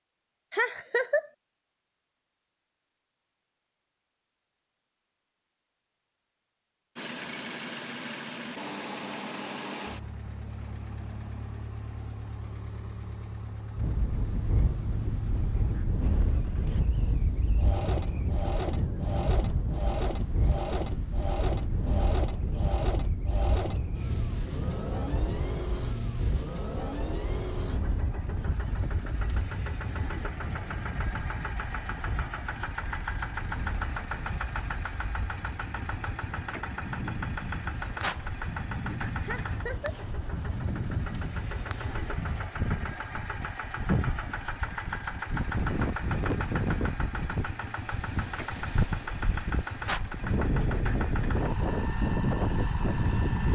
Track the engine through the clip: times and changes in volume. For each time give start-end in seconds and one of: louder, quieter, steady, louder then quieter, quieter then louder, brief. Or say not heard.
7.0-53.5 steady.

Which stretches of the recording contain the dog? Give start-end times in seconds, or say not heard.
not heard.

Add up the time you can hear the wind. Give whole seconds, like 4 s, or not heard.
40 s.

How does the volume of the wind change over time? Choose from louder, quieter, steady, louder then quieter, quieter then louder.
quieter then louder.